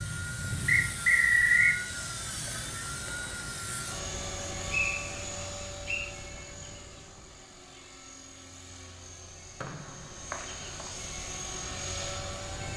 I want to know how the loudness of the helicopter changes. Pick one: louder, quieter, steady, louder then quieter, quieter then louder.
quieter then louder.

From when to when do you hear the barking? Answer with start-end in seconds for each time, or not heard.
not heard.